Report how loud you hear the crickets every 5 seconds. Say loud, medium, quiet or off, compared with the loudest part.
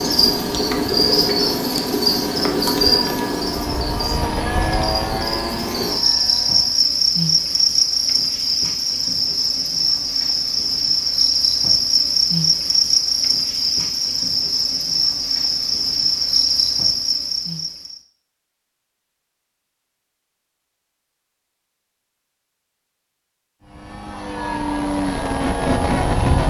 loud, loud, loud, loud, off, off.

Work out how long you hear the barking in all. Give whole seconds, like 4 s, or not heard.
not heard.